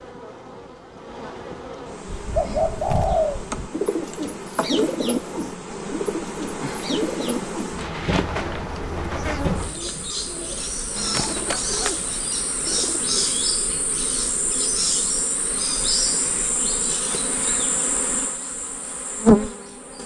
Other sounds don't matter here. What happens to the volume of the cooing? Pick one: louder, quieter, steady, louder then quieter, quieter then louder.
quieter.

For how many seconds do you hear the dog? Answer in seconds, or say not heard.
not heard.